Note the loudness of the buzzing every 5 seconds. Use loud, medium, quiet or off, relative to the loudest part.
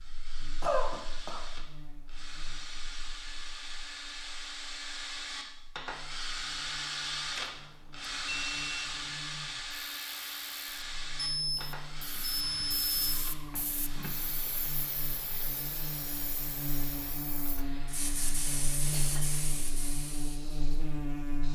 quiet, quiet, medium, loud, loud.